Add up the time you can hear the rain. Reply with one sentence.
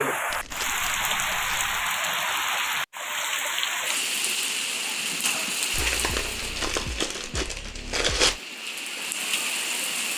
You can hear the rain for 10 seconds altogether.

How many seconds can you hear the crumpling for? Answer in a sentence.
The crumpling can be heard for 4 seconds in total.